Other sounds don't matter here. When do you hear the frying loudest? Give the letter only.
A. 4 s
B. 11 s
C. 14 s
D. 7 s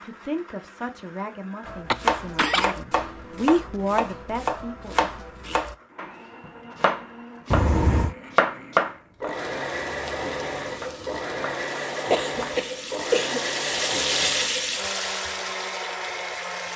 C.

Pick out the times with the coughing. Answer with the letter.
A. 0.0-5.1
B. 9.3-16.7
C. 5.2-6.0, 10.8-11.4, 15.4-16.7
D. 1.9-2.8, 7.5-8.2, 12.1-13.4
D.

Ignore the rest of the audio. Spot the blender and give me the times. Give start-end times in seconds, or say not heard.
0.0-16.7.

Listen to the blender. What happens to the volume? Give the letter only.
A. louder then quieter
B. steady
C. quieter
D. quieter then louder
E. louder
E.